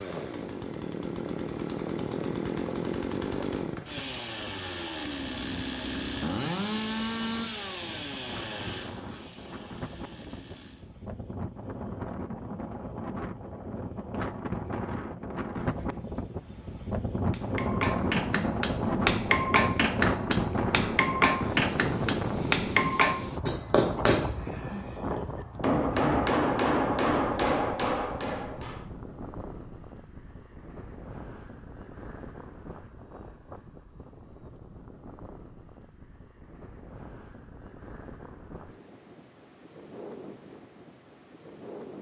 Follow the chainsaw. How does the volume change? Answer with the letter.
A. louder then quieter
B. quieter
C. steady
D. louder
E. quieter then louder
B.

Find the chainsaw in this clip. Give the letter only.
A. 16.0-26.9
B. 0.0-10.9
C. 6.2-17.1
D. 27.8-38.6
B.